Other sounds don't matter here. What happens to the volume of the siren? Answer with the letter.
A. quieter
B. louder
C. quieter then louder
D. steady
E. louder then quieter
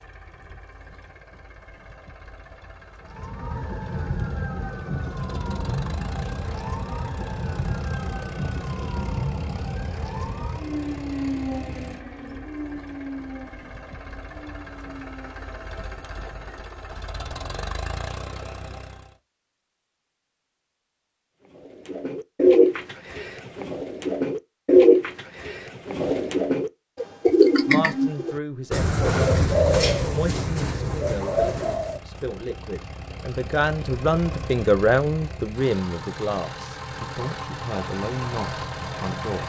A.